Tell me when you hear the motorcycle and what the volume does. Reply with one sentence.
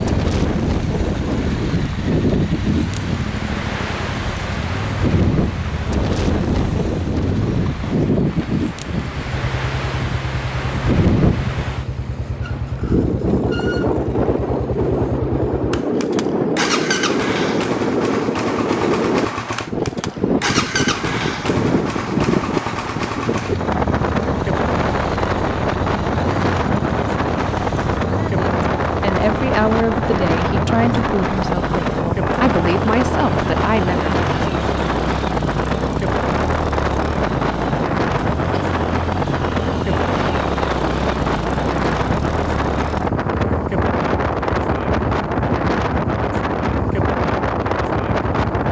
The motorcycle can be heard from 0.0 to 48.6 s, at a steady volume.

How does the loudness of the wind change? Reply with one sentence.
The loudness of the wind stays about the same.